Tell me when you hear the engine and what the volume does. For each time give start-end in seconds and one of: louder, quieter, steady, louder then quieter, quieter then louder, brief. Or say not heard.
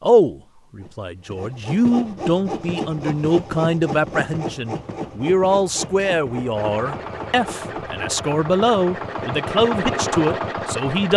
6.5-11.1 louder.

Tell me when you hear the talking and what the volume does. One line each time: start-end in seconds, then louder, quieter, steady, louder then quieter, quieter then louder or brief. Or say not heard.
0.0-11.1 steady.